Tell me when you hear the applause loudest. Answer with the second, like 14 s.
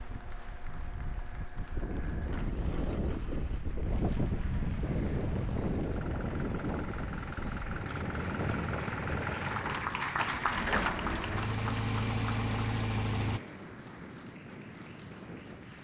10 s.